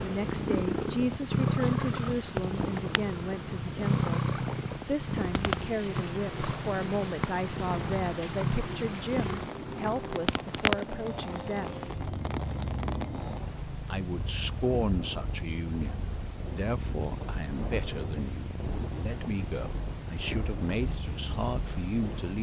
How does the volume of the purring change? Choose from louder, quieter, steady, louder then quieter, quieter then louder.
quieter.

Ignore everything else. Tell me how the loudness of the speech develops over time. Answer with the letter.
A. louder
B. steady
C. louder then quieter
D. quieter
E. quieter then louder
B.